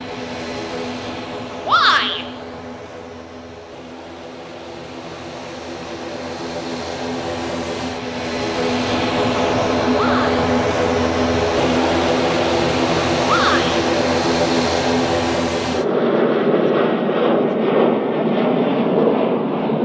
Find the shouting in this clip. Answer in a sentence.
The shouting can be heard from 1.6 to 2.2 s, from 9.9 to 10.3 s and from 13.2 to 13.8 s.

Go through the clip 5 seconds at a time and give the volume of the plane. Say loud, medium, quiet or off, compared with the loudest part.
quiet, medium, loud, loud.